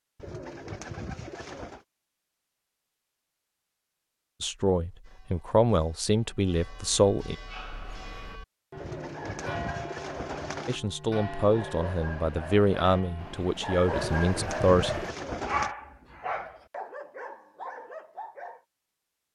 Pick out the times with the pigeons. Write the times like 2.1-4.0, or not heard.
0.1-1.9, 8.8-10.8, 13.8-15.8.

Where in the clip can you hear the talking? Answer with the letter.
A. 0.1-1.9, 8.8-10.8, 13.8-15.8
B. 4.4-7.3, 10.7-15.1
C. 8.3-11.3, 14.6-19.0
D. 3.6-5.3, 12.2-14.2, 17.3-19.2
B.